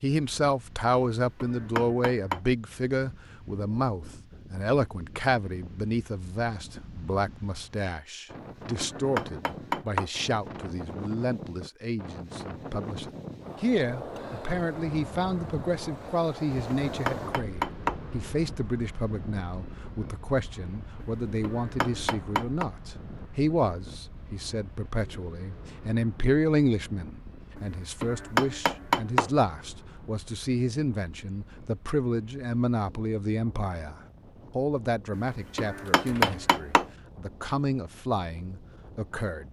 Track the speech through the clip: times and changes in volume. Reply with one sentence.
The speech can be heard from 0.0 to 39.4 s, at a steady volume.